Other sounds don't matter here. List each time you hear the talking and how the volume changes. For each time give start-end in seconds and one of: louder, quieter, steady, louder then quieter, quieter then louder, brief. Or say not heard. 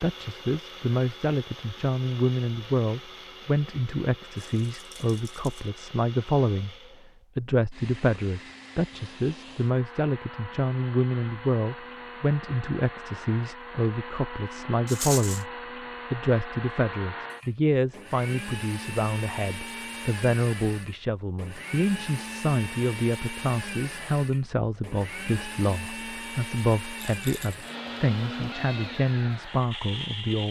0.0-6.8 steady
7.3-15.5 steady
16.1-30.4 steady.